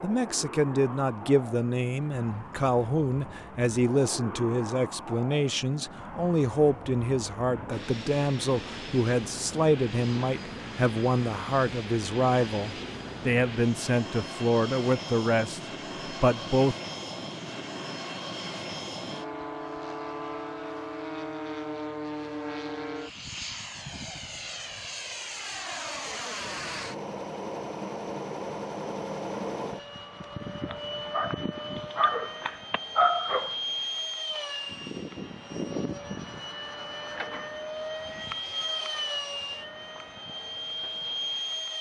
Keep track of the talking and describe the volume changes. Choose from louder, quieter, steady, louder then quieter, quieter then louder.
steady.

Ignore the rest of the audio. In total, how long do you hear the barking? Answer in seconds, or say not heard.
3 s.